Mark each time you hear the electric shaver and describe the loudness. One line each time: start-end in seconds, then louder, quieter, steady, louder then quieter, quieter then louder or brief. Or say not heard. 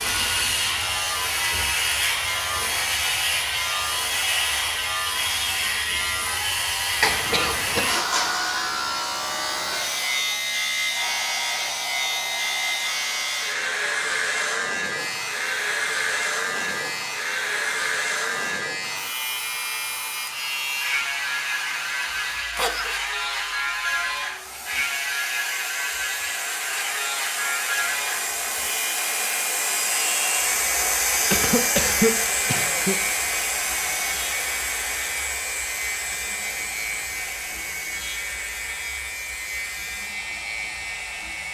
0.0-41.5 quieter.